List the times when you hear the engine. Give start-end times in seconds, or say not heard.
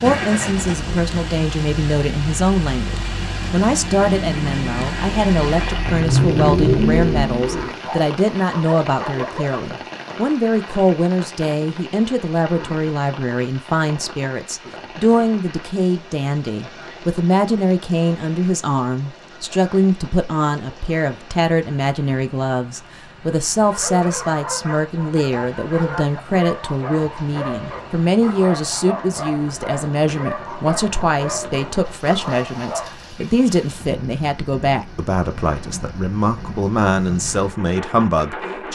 0.0-7.8.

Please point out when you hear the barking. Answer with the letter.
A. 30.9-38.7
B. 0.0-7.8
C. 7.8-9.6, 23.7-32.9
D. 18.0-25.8
C.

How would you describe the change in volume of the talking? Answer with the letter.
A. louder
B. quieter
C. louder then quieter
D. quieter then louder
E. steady
E.